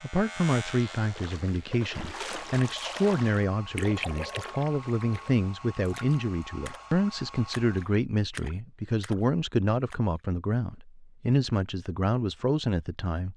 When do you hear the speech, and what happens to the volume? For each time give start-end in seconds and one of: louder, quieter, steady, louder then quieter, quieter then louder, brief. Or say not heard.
0.0-13.3 steady.